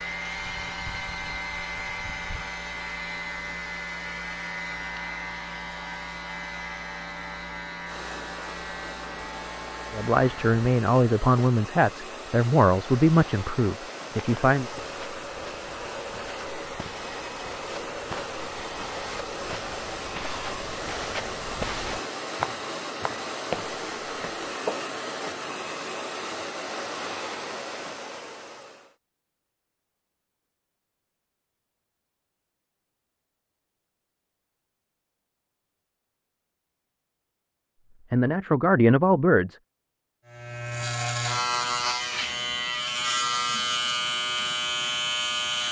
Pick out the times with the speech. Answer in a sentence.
You can hear the speech from 9.9 to 14.7 s and from 38.1 to 39.5 s.